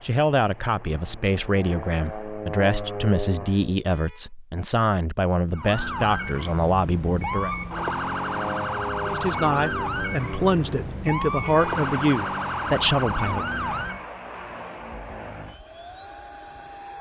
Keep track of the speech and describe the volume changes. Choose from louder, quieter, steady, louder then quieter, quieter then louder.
steady.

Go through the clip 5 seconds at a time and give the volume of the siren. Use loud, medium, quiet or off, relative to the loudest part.
off, loud, loud, off.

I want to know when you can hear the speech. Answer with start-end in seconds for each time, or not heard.
0.0-7.5, 9.1-13.4.